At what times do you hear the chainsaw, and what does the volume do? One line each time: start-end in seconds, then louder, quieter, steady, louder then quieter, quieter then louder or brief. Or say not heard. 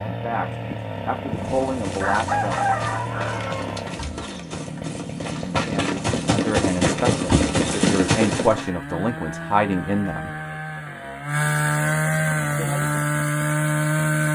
0.0-14.3 louder.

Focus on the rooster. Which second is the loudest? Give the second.
3 s.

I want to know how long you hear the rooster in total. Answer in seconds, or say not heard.
3 s.